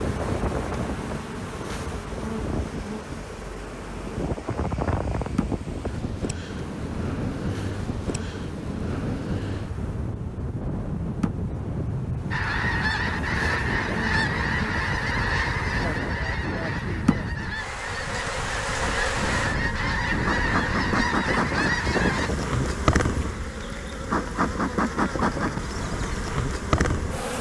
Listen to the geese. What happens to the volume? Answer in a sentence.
The loudness of the geese goes down, then up.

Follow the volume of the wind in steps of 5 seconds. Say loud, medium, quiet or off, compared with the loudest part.
loud, loud, loud, loud, loud, medium.